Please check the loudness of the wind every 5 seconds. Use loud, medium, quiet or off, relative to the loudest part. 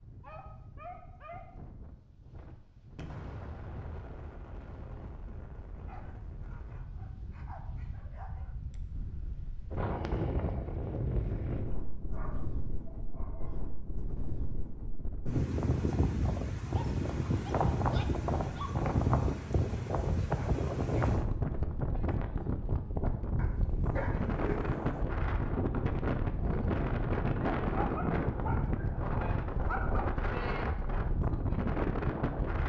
quiet, quiet, medium, loud, loud, loud, loud.